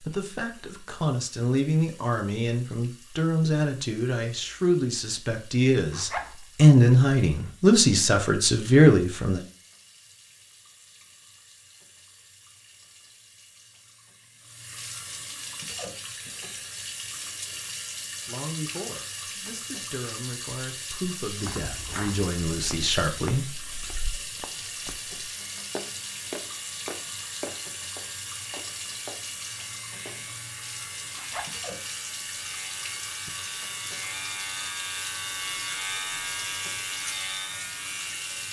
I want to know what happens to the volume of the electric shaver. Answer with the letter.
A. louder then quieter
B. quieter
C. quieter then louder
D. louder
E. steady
D.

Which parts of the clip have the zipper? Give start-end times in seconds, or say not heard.
5.8-6.4, 31.1-31.6.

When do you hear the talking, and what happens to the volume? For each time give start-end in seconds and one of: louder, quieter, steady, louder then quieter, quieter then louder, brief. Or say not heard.
0.0-9.4 louder
18.2-23.7 louder.